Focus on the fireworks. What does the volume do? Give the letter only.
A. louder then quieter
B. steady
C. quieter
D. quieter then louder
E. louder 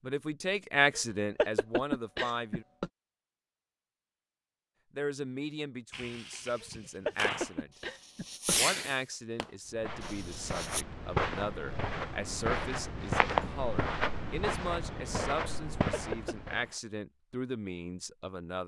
A.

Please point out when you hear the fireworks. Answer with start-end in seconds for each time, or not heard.
5.9-10.8.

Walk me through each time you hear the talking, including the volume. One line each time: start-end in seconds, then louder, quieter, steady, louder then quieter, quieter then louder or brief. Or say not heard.
0.0-2.6 brief
5.0-7.7 brief
8.5-18.6 steady.